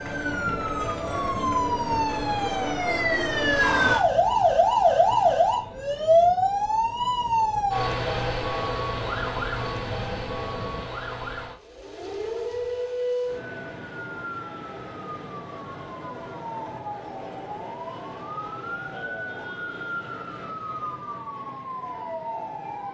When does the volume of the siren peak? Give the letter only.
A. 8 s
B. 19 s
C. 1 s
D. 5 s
D.